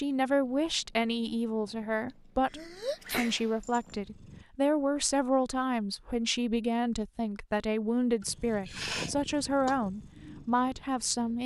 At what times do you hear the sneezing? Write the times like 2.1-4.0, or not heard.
2.5-3.4, 8.2-9.2.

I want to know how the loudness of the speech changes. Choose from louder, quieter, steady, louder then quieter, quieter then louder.
steady.